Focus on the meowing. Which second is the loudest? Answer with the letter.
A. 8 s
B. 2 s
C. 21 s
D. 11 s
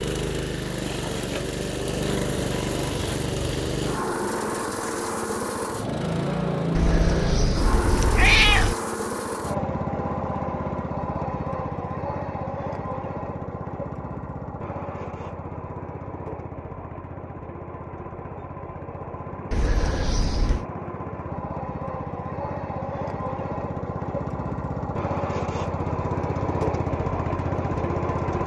A.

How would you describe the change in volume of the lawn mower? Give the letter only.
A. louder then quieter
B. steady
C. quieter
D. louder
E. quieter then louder
E.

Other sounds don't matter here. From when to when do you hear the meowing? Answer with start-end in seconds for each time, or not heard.
6.8-8.8, 19.5-20.6.